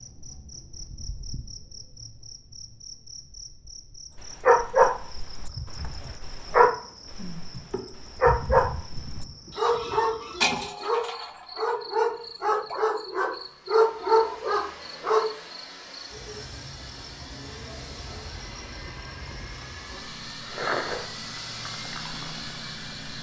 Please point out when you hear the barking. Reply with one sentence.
The barking can be heard from 4.2 to 15.3 s.